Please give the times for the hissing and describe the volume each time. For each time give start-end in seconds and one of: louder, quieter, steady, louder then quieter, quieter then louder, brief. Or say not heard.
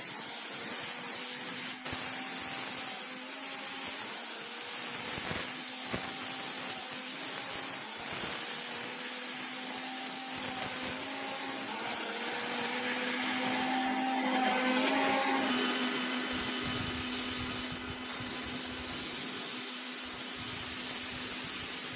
0.0-21.9 steady.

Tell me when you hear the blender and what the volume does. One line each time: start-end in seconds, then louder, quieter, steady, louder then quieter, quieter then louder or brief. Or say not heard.
0.0-21.9 louder then quieter.